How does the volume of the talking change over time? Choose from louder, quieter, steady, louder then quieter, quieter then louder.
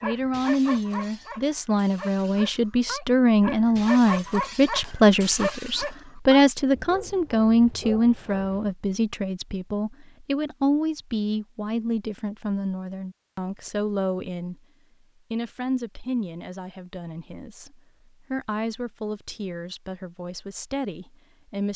quieter.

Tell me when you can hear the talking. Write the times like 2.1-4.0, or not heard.
0.0-14.6, 15.3-21.7.